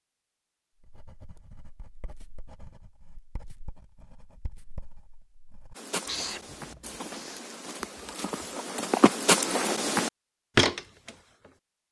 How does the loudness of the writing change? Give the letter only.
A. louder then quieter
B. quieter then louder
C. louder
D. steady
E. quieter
C.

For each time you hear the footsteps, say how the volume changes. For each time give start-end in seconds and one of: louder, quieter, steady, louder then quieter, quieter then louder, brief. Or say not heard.
5.8-11.5 louder.